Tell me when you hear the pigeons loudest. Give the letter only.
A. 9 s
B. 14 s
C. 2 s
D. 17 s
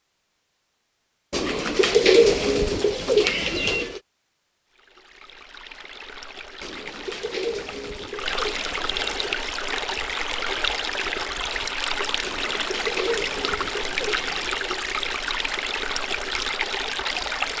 C.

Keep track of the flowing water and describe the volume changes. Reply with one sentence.
The loudness of the flowing water goes up.